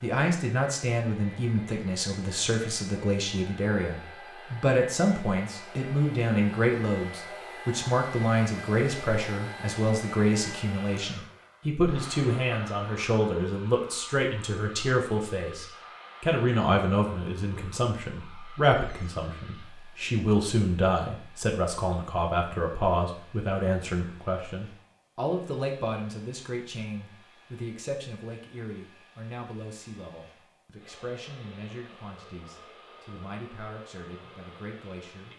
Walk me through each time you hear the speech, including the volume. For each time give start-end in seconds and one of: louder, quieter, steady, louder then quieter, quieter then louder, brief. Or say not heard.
0.0-35.3 quieter.